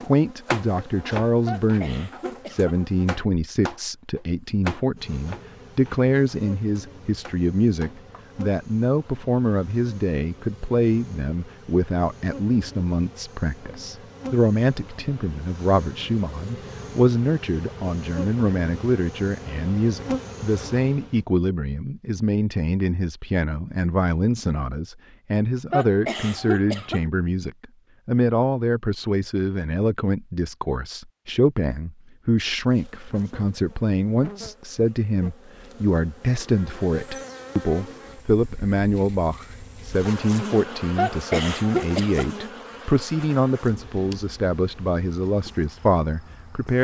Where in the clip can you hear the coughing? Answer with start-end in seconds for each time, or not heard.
1.4-2.8, 25.7-27.1, 41.0-42.3.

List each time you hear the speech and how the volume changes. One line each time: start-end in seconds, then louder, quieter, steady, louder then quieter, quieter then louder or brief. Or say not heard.
0.0-46.7 steady.